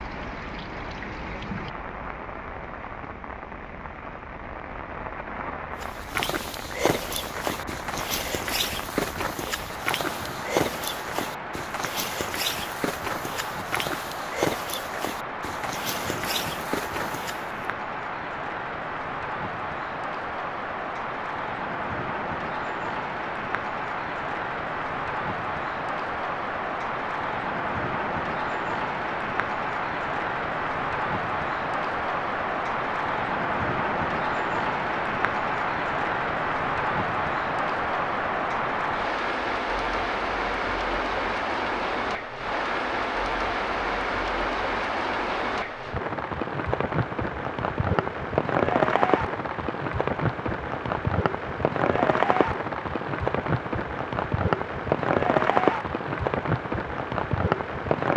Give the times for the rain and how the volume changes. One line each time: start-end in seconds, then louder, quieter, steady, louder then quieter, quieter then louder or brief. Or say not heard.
0.0-58.1 louder.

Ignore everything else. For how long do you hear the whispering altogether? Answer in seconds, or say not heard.
not heard.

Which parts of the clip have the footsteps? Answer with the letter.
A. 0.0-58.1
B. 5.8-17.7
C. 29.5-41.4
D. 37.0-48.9
B.